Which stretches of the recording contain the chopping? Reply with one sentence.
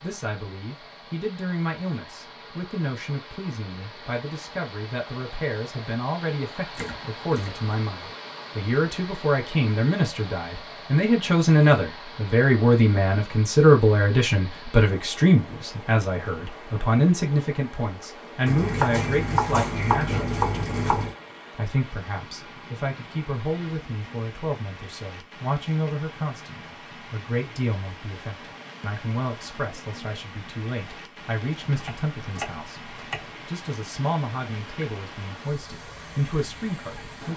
The chopping can be heard from 6.8 to 7.7 s, from 18.4 to 21.1 s and from 31.6 to 33.3 s.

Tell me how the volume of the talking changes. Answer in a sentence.
The volume of the talking goes up, then down.